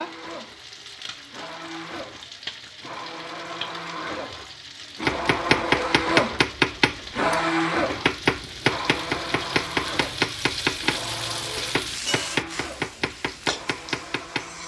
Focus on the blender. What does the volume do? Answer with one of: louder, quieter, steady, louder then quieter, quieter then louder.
louder then quieter.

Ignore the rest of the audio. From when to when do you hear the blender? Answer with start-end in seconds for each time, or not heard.
0.0-14.6.